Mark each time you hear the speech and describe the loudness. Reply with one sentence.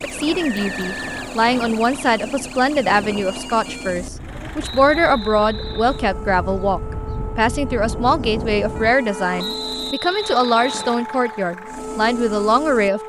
The speech can be heard from 0.0 to 13.0 s, at a steady volume.